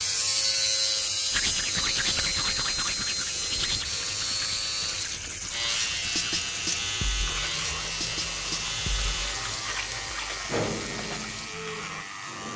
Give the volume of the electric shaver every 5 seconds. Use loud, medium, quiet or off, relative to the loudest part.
loud, loud, medium.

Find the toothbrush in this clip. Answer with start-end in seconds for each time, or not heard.
1.3-12.1.